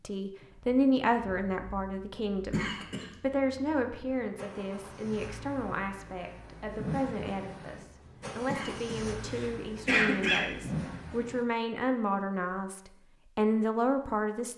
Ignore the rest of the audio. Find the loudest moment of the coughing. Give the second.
10 s.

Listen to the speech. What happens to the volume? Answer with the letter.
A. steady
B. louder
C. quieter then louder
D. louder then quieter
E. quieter
C.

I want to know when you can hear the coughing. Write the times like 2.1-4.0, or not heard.
2.5-3.1, 8.4-10.4.